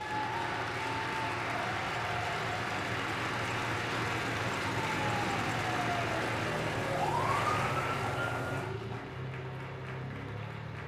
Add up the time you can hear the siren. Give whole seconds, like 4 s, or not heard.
4 s.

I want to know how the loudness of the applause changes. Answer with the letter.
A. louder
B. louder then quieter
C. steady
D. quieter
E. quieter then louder
D.